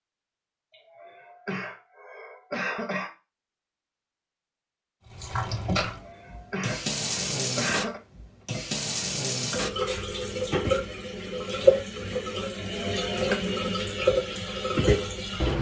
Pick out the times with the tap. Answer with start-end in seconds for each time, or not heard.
5.1-15.5.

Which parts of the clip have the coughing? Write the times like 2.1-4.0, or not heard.
0.7-3.1, 5.8-8.0, 12.6-13.4.